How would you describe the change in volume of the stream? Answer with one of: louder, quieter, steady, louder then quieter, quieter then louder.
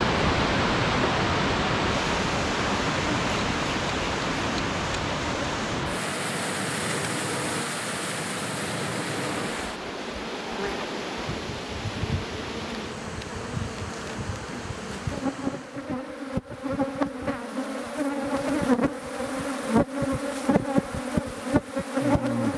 quieter.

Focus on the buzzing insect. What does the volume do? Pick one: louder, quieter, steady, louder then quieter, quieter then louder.
louder.